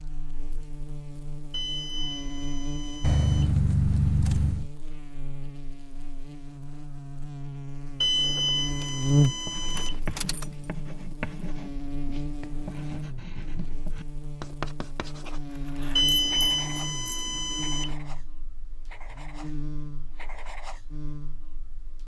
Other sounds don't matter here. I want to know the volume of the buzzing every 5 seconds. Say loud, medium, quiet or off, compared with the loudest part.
medium, loud, medium, medium, quiet.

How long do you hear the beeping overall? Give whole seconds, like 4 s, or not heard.
6 s.